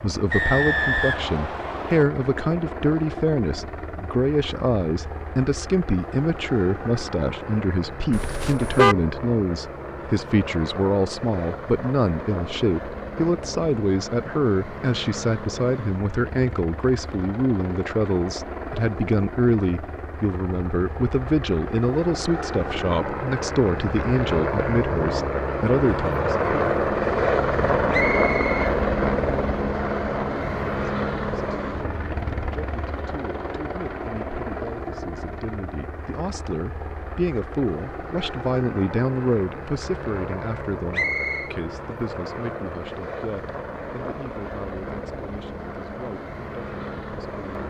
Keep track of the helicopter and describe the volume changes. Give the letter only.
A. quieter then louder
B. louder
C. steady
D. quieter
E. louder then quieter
E.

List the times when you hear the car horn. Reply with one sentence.
The car horn can be heard from 8.1 to 8.9 s.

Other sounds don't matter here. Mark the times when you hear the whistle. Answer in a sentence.
The whistle can be heard from 0.3 to 2.0 s, from 27.9 to 28.7 s and from 40.9 to 41.5 s.